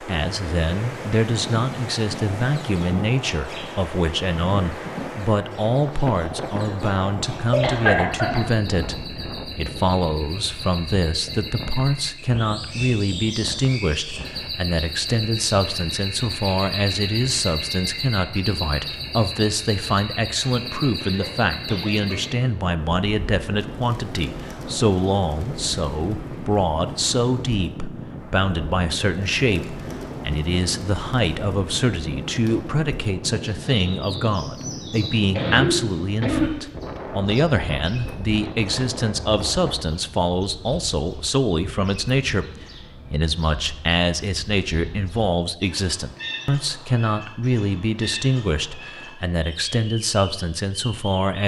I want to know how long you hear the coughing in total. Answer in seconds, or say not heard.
4 s.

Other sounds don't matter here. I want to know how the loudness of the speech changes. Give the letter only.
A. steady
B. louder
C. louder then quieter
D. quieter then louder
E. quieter
A.